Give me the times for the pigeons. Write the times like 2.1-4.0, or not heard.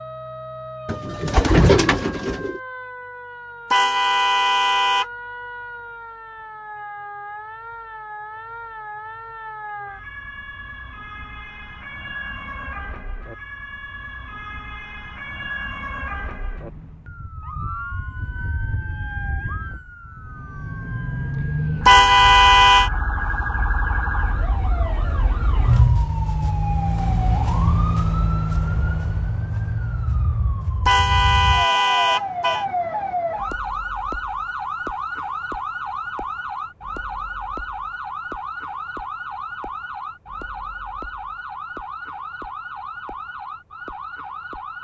0.8-2.6.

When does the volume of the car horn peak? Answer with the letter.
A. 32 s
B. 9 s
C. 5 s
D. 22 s
D.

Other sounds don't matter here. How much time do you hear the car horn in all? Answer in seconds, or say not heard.
4 s.